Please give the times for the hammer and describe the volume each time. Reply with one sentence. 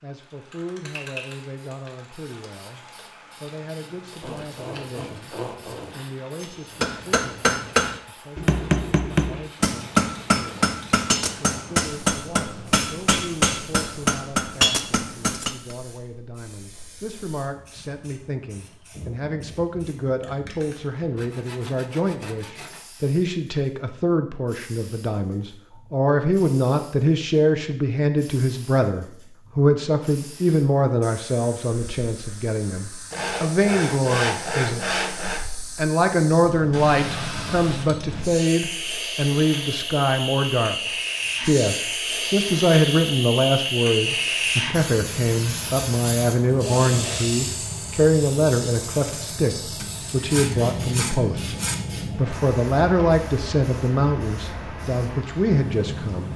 You can hear the hammer from 6.4 to 15.8 s, at a steady volume.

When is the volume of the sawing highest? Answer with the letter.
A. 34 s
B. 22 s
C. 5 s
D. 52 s
A.